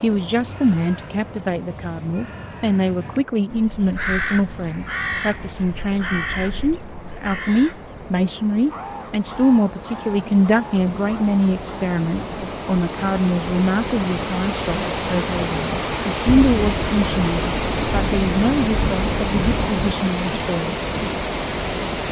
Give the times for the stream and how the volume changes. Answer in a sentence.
You can hear the stream from 0.0 to 22.0 s, getting louder.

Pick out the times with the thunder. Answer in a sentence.
You can hear the thunder from 16.2 to 19.9 s.